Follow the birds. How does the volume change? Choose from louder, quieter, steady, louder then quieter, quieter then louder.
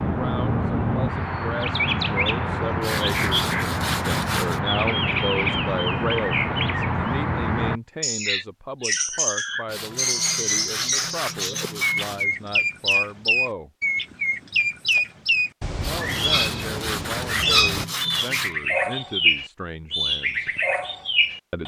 steady.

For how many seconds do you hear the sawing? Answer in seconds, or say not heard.
7 s.